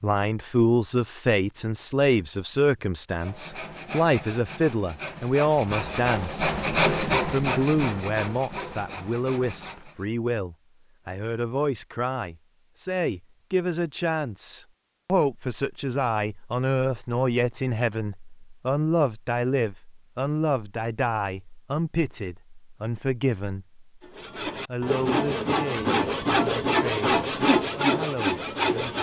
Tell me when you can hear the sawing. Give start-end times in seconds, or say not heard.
3.1-10.1, 24.0-28.9.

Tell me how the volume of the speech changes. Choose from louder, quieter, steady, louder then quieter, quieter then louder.
quieter.